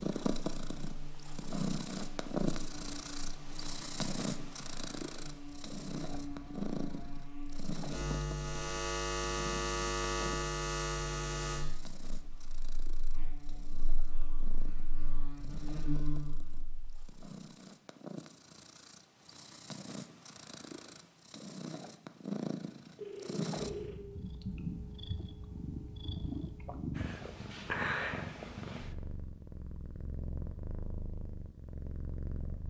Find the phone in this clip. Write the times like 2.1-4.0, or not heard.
22.9-24.0.